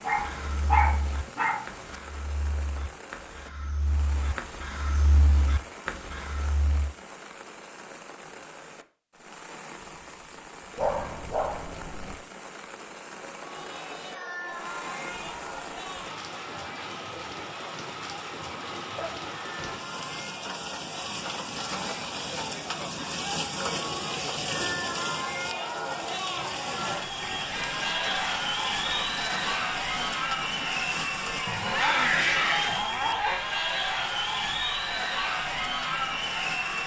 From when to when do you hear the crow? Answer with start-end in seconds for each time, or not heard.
0.1-7.0.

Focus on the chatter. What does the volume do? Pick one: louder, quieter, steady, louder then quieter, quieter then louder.
louder.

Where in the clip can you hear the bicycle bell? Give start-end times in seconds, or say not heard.
not heard.